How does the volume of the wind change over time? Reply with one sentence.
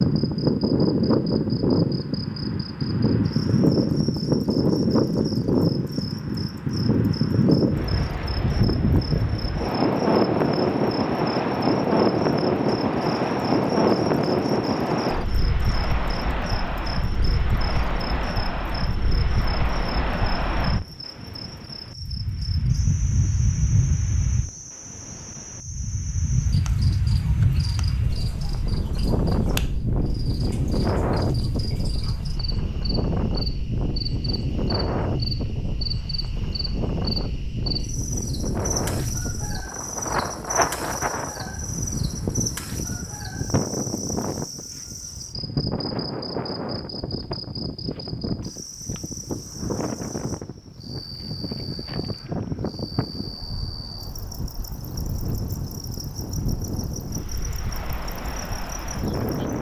The loudness of the wind goes down.